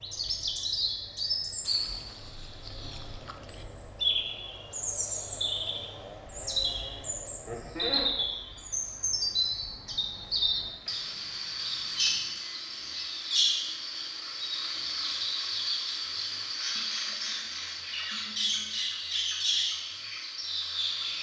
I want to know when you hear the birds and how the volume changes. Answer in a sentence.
You can hear the birds from 0.0 to 21.1 s, at a steady volume.